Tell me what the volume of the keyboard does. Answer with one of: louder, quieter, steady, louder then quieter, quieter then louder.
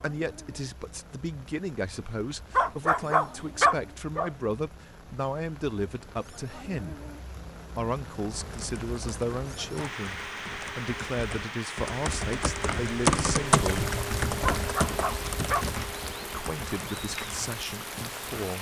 louder then quieter.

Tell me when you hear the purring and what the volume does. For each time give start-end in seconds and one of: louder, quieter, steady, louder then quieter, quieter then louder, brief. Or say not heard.
not heard.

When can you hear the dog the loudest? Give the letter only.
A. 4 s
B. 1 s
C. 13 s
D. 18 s
A.